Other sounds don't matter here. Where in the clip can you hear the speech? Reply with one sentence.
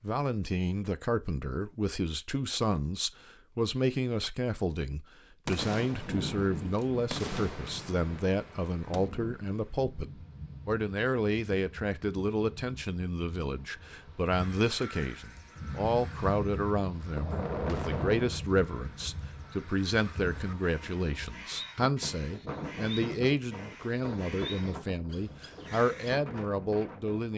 The speech can be heard from 0.0 to 27.3 s.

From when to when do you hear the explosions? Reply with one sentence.
You can hear the explosions from 5.5 to 9.1 s and from 17.1 to 18.4 s.